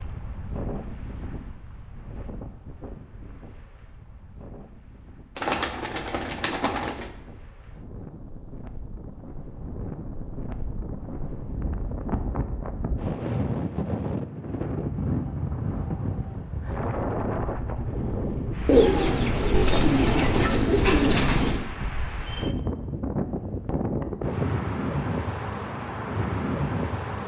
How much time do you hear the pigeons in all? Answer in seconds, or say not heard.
5 s.